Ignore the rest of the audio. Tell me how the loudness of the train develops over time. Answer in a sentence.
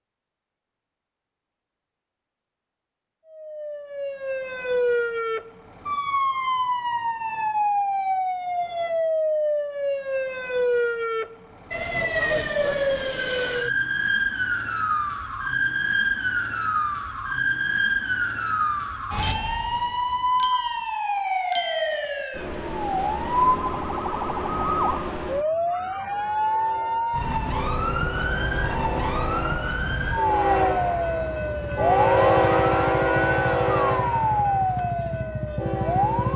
The volume of the train goes up, then down.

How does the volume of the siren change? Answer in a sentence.
The volume of the siren stays about the same.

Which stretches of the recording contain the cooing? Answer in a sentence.
You can't hear the cooing here.